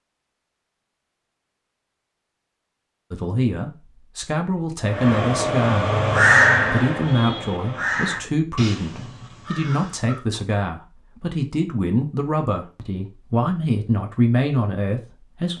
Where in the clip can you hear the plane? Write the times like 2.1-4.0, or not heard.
not heard.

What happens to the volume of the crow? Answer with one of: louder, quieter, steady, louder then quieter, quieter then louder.
louder then quieter.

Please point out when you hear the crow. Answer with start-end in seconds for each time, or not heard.
4.8-10.2.